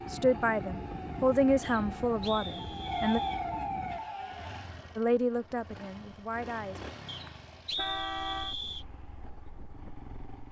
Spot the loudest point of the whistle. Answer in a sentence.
The volume of the whistle peaks at 8 seconds.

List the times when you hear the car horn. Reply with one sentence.
The car horn can be heard from 7.8 to 8.6 s.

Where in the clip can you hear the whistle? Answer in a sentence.
The whistle can be heard from 1.6 to 3.5 s and from 7.0 to 8.8 s.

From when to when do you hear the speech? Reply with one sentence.
The speech can be heard from 0.1 to 3.2 s and from 5.0 to 6.8 s.